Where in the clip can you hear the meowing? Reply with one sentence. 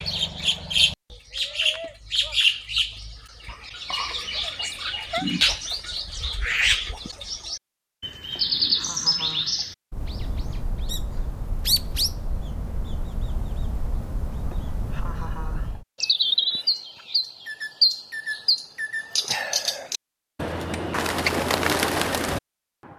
You can hear the meowing from 4.6 to 5.2 s.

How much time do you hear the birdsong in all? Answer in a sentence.
You can hear the birdsong for 23 seconds altogether.